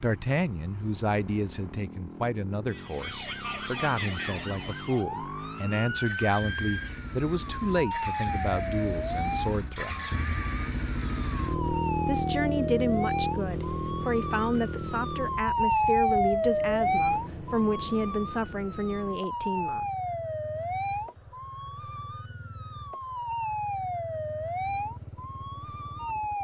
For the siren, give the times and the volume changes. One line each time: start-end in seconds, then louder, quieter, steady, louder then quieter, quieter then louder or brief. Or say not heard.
2.7-26.3 louder then quieter.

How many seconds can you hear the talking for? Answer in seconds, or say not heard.
18 s.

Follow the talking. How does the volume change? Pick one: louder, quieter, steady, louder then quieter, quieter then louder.
steady.